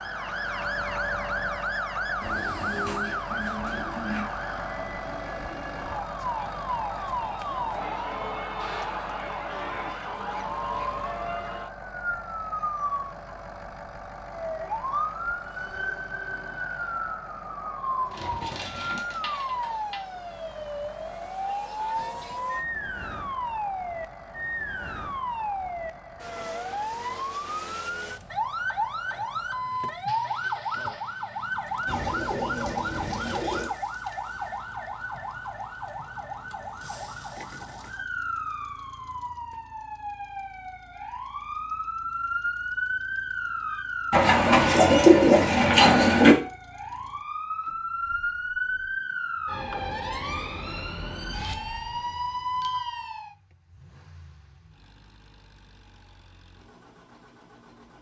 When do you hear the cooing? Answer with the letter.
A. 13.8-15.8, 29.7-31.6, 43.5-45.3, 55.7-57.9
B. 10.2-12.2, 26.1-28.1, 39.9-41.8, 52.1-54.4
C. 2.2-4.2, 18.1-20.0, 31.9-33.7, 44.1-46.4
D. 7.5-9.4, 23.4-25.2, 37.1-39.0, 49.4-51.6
C.